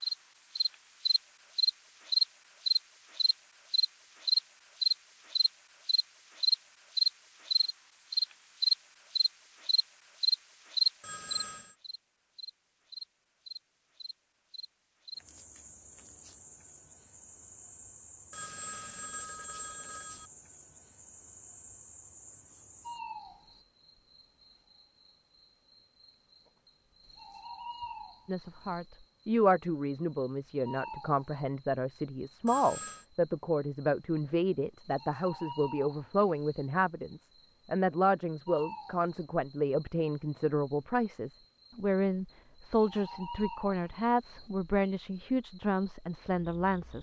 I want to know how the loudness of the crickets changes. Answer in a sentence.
The volume of the crickets goes down.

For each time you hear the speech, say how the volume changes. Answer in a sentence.
The speech can be heard from 28.2 to 46.9 s, at a steady volume.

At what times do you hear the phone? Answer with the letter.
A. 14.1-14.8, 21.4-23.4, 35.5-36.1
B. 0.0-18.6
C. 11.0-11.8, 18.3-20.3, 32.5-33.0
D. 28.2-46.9
C.